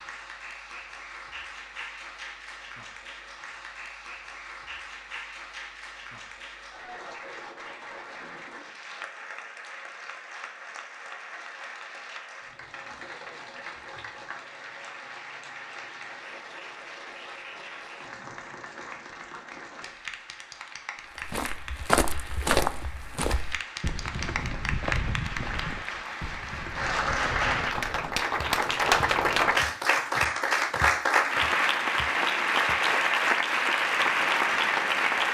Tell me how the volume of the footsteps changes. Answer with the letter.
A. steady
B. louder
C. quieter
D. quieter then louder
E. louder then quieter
C.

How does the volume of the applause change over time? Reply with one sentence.
The volume of the applause goes up.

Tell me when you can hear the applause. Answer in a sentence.
The applause can be heard from 0.0 to 35.2 s.